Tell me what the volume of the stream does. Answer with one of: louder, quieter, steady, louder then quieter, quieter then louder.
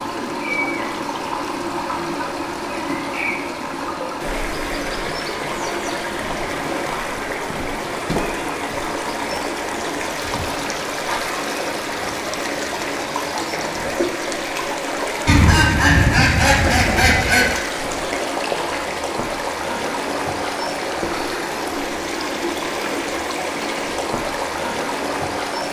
steady.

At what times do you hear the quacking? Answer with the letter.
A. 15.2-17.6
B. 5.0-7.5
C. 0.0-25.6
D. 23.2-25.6
A.